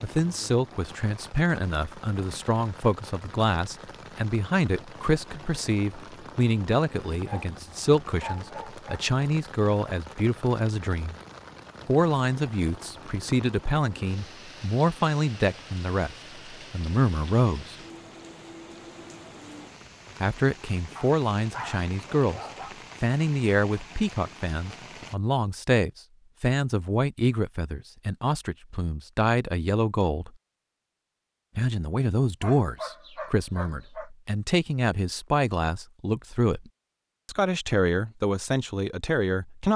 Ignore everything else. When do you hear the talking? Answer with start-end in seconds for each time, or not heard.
0.0-11.2, 11.8-17.8, 20.2-22.4, 23.0-30.3, 31.6-39.7.